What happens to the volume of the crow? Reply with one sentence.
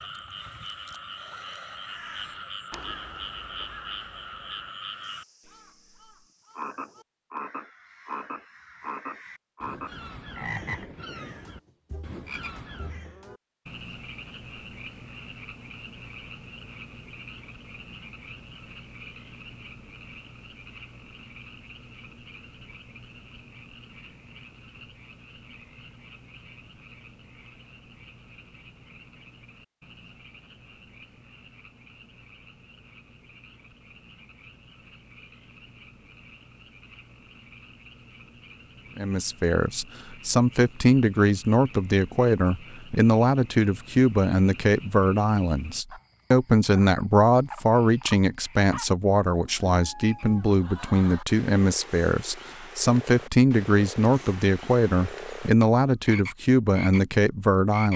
The volume of the crow goes down, then up.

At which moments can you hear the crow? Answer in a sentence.
The crow can be heard from 1.9 to 13.3 s.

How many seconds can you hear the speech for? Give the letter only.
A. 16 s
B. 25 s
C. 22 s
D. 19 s
D.